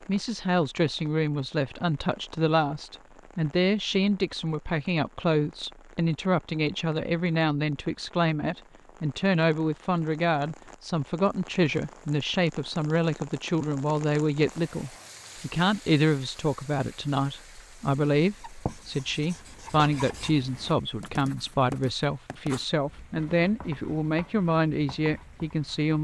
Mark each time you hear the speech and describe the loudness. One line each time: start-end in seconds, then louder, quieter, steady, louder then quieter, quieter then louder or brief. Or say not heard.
0.0-25.9 steady.